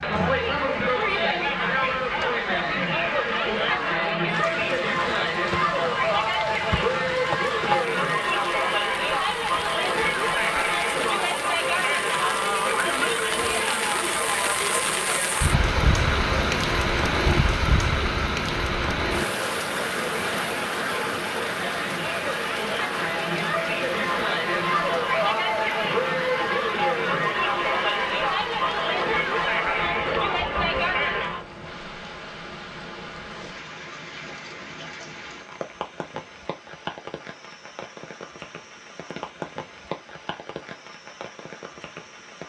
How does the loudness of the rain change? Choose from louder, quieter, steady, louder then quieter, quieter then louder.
louder then quieter.